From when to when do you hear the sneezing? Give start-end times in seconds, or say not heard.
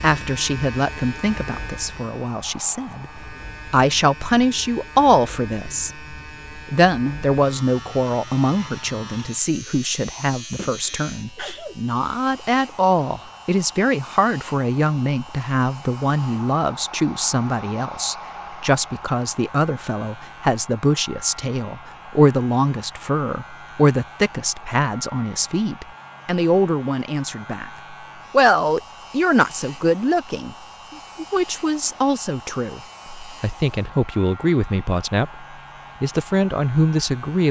10.6-11.8.